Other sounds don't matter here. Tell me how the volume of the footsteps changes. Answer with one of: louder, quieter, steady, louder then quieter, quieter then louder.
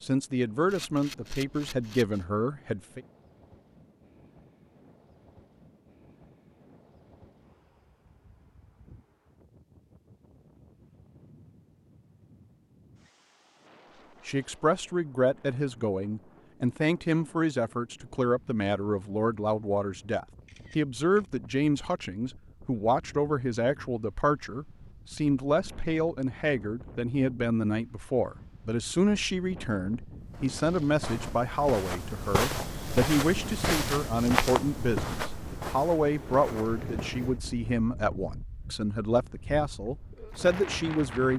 louder then quieter.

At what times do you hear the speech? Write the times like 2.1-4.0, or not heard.
0.0-3.0, 14.2-41.3.